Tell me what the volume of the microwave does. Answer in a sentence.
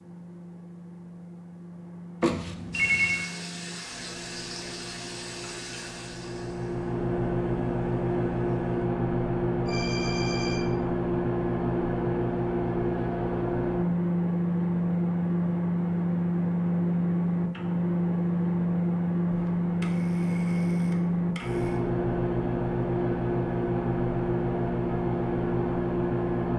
The volume of the microwave goes up.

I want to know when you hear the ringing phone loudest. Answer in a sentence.
The loudest moment of the ringing phone is at 3 seconds.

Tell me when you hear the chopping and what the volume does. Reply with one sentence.
The chopping can't be heard in this clip.